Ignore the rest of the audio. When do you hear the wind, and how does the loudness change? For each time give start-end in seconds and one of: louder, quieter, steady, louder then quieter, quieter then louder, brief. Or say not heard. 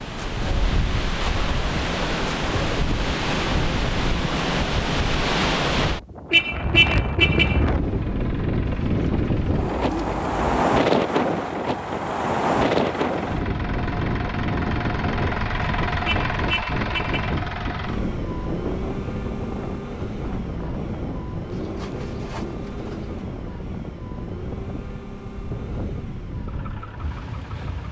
0.0-27.8 quieter.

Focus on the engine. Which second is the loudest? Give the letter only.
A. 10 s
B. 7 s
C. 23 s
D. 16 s
D.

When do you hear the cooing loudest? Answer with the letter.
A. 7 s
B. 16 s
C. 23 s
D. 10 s
D.